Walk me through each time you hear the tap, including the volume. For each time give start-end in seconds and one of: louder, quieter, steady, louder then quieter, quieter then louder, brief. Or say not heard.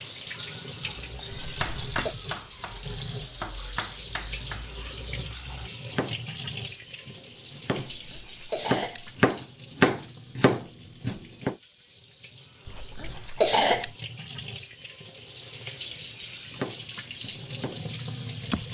0.0-18.7 quieter then louder.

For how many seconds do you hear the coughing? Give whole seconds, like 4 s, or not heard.
3 s.